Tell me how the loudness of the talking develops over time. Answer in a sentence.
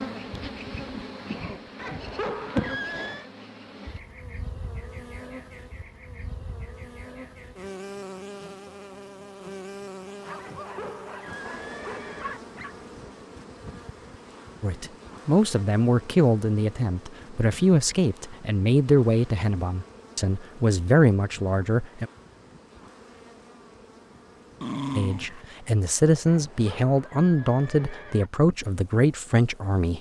The loudness of the talking stays about the same.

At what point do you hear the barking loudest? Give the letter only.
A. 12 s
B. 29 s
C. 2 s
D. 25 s
D.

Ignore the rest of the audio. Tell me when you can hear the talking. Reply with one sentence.
The talking can be heard from 14.6 to 22.1 s and from 24.9 to 29.9 s.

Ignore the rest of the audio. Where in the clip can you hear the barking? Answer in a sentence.
You can hear the barking from 10.1 to 12.8 s and from 24.6 to 25.4 s.